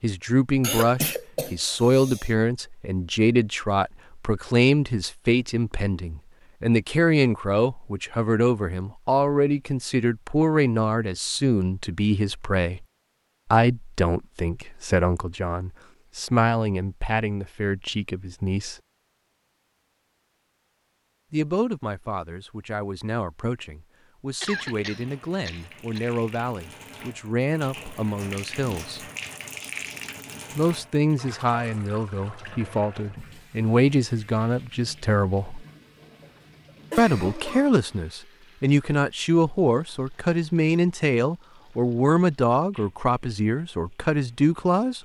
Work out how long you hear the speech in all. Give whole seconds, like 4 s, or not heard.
39 s.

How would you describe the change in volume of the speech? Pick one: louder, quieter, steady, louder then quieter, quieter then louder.
quieter then louder.